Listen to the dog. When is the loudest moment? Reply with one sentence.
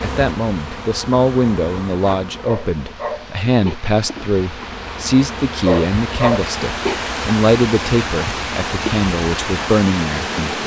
The volume of the dog peaks at 6 seconds.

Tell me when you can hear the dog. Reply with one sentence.
You can hear the dog from 2.5 to 3.8 s and from 5.7 to 7.0 s.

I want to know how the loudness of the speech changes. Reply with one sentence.
The volume of the speech stays about the same.